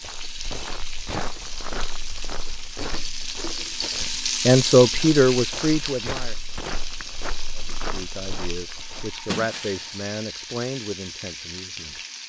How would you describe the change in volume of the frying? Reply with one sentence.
The volume of the frying goes up, then down.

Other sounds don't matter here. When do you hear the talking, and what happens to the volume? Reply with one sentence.
The talking can be heard briefly from 4.5 to 6.3 s; and from 7.5 to 12.0 s, getting louder then quieter.